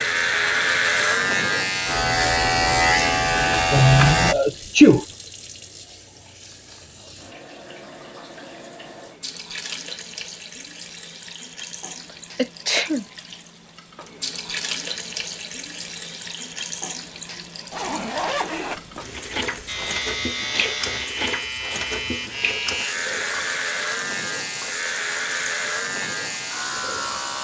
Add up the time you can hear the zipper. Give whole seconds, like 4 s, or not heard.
2 s.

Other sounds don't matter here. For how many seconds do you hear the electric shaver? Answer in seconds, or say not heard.
12 s.